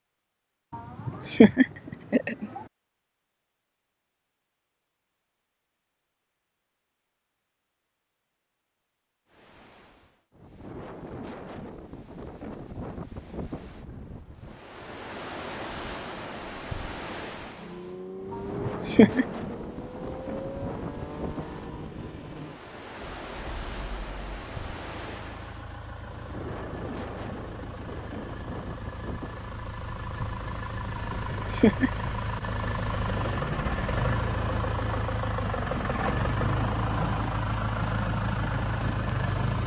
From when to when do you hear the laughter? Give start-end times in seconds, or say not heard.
0.7-2.6, 18.3-19.2, 30.9-31.9.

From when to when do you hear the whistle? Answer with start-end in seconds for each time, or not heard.
not heard.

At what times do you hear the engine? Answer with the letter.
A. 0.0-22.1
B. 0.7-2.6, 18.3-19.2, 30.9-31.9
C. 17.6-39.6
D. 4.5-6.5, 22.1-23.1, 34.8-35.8
C.